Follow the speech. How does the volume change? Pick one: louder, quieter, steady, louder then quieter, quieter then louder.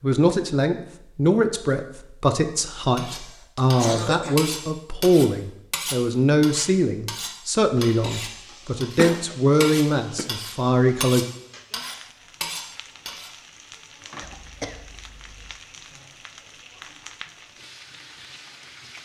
steady.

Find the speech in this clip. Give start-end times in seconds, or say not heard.
0.0-11.2.